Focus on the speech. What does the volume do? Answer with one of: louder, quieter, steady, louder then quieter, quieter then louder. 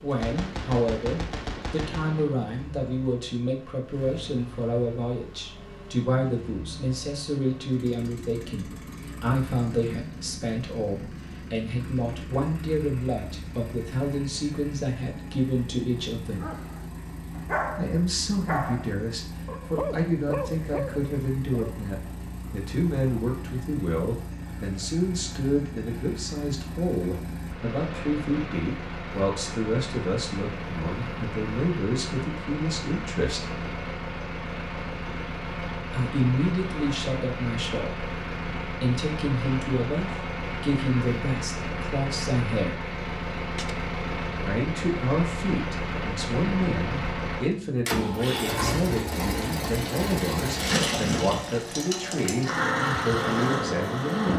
steady.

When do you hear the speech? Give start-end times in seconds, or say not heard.
0.0-16.4, 17.8-33.5, 35.9-42.8, 44.4-54.3.